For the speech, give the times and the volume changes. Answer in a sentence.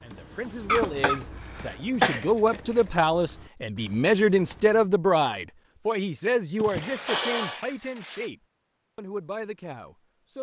You can hear the speech from 0.0 to 8.3 s, getting louder then quieter; and briefly from 8.9 to 10.3 s.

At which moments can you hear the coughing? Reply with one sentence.
You can hear the coughing from 0.7 to 2.2 s and from 6.5 to 7.6 s.